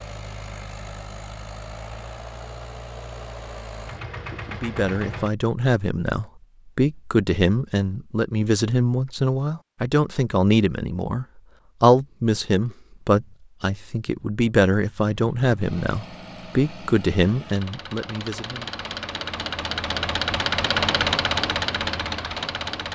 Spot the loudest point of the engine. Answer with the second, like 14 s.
21 s.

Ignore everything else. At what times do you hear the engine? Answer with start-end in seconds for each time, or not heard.
0.0-5.3, 15.1-22.9.